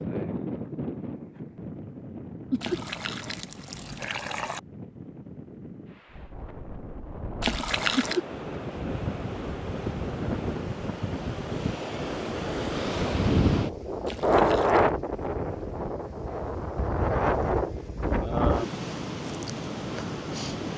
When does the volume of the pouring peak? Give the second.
8 s.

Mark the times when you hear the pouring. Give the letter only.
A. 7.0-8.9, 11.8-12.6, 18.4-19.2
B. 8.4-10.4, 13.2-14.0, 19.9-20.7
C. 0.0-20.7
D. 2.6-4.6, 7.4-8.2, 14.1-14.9
D.